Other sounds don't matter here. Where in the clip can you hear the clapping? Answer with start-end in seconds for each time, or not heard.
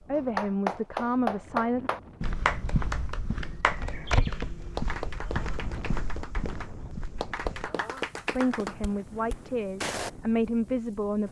0.1-8.8.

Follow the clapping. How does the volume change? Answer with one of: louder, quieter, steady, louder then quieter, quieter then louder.
quieter then louder.